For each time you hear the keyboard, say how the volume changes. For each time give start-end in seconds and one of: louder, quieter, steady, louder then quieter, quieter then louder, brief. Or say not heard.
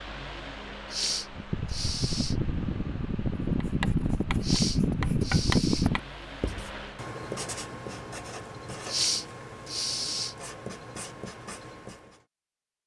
not heard.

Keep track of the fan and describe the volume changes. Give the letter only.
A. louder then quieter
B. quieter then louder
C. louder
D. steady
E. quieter
C.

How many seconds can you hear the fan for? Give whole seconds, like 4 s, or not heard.
7 s.